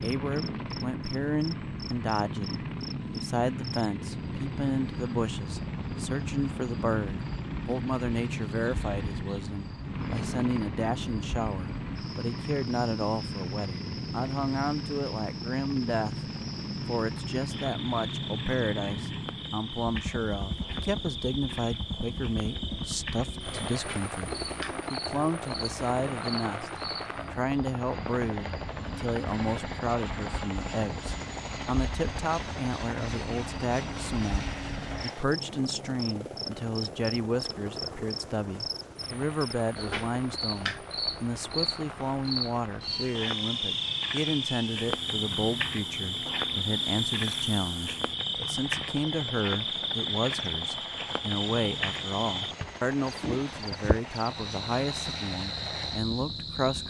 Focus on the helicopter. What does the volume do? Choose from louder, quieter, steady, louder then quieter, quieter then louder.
quieter.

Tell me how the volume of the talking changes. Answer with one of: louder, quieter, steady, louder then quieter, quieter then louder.
steady.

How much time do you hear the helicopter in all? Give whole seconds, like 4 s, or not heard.
57 s.